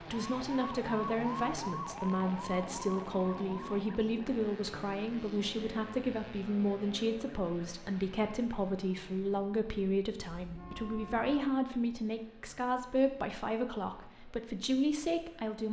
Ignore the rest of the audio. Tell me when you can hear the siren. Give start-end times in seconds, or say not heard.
0.0-4.1.